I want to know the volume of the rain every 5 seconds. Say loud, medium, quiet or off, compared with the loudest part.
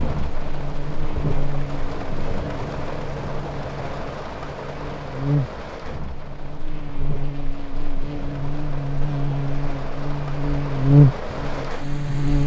loud, medium, loud.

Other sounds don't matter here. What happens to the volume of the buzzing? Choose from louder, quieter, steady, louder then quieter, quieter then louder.
louder.